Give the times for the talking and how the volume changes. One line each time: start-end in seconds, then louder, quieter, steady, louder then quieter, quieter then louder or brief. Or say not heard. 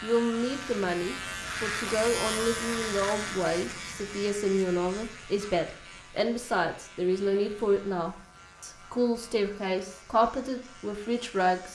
0.0-11.6 steady.